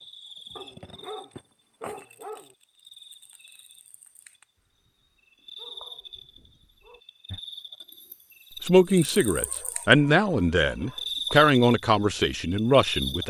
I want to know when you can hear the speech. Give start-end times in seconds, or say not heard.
8.7-13.2.